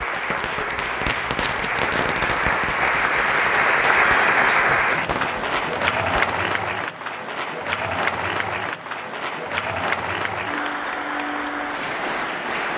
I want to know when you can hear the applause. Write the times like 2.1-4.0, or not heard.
0.0-12.7.